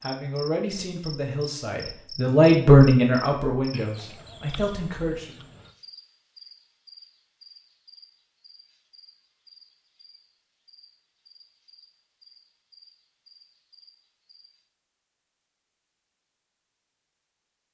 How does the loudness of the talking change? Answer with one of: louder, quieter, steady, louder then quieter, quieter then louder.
louder then quieter.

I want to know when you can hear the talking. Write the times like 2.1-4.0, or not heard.
0.0-5.5.